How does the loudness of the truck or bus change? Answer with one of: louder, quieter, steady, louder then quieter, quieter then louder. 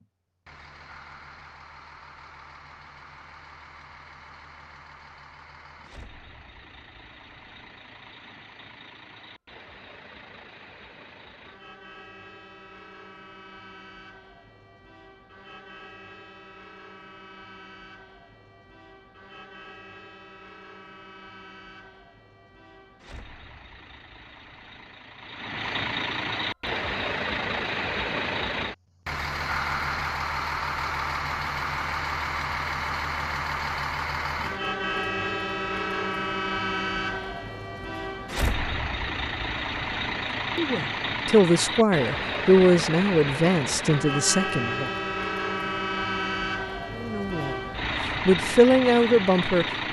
louder.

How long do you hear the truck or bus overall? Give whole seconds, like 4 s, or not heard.
50 s.